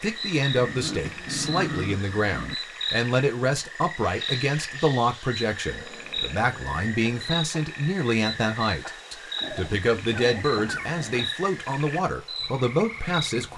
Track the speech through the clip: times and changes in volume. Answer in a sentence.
The speech can be heard from 0.0 to 13.5 s, at a steady volume.